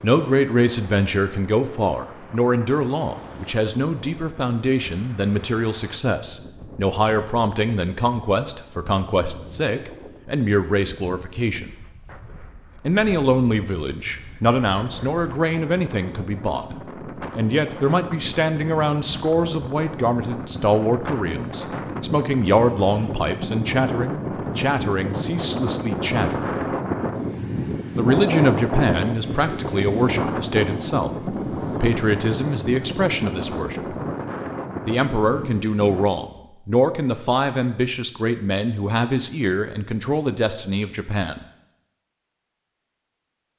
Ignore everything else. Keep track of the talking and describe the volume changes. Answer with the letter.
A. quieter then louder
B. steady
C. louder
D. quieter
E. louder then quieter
B.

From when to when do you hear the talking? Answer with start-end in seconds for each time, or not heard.
0.0-11.7, 12.8-26.6, 27.9-34.0, 34.9-41.4.